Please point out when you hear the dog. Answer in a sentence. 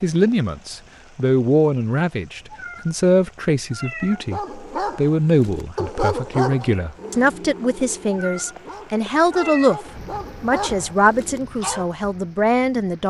The dog can be heard from 4.1 to 11.9 s.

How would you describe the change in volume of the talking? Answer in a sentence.
The loudness of the talking stays about the same.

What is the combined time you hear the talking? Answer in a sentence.
The talking can be heard for 13 seconds in total.